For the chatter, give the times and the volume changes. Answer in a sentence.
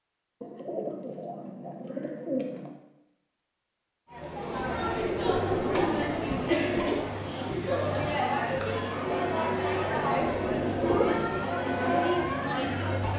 You can hear the chatter from 4.1 to 13.1 s, at a steady volume.